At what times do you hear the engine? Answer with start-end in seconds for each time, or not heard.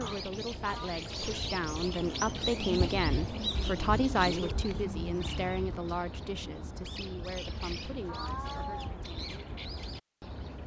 2.0-5.7.